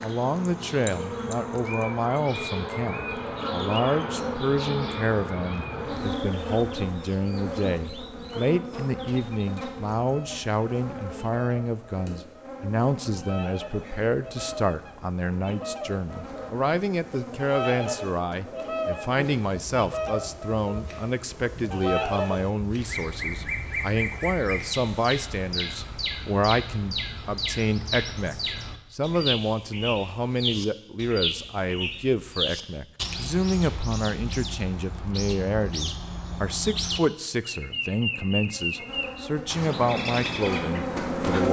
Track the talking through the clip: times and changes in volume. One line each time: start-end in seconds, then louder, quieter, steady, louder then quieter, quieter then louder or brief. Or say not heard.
0.0-41.4 steady.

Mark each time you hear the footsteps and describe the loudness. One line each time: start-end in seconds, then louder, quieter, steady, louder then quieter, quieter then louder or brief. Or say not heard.
not heard.